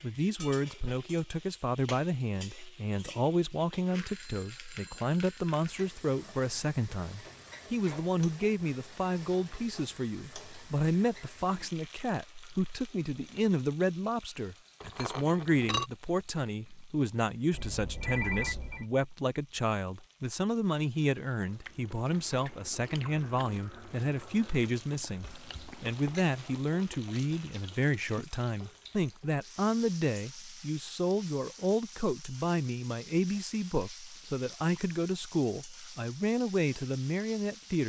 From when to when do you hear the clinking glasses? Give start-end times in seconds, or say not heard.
14.8-15.9.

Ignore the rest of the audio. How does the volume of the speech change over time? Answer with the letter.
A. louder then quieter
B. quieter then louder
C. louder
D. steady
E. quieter
D.